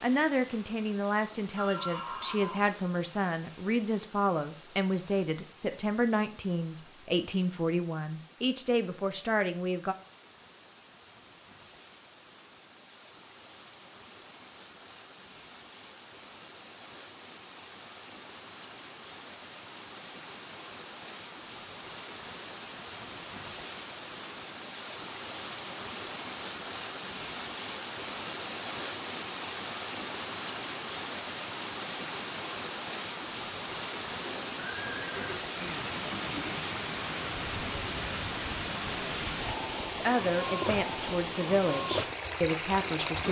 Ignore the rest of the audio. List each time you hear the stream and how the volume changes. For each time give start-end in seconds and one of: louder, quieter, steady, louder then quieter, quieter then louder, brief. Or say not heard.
0.0-43.2 louder.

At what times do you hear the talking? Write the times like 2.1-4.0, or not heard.
0.0-9.9, 40.0-43.2.